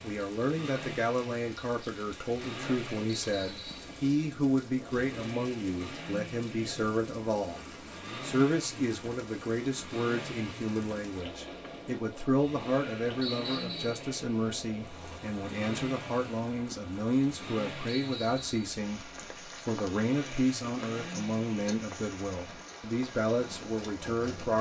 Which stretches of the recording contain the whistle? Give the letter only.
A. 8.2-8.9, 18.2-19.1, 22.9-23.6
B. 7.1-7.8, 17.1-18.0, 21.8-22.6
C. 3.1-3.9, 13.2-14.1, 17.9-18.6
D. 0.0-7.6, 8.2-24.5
C.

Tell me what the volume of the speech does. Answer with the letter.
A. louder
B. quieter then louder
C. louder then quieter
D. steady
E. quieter
D.